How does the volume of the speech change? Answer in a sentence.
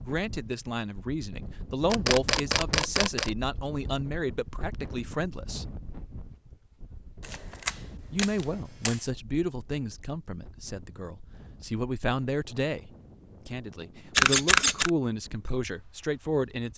The volume of the speech stays about the same.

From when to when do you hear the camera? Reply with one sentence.
The camera can be heard from 1.9 to 3.3 s, from 7.2 to 9.0 s and from 14.2 to 14.9 s.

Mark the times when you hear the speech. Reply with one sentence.
The speech can be heard from 0.1 to 5.7 s and from 8.1 to 16.7 s.